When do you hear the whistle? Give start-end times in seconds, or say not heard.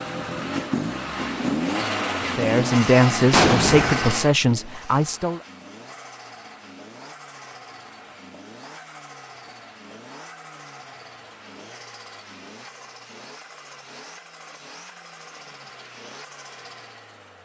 not heard.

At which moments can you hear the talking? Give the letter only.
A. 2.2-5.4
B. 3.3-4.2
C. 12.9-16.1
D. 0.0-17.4
A.